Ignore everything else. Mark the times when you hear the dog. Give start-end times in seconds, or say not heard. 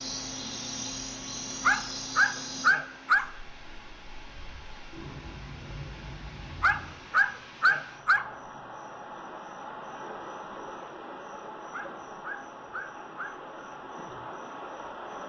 1.6-3.3, 6.6-8.2, 11.7-13.3.